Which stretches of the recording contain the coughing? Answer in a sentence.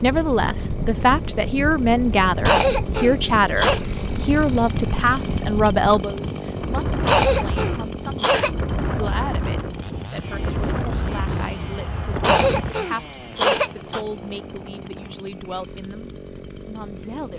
The coughing can be heard from 2.5 to 3.9 s, from 7.0 to 8.5 s and from 12.2 to 14.1 s.